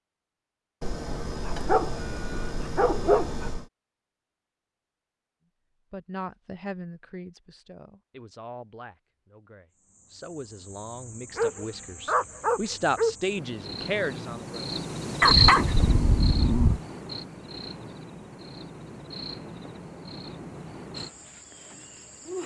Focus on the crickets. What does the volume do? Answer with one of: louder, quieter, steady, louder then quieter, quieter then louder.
louder then quieter.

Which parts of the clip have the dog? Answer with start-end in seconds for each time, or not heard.
0.8-3.6, 11.3-13.2, 15.2-16.8.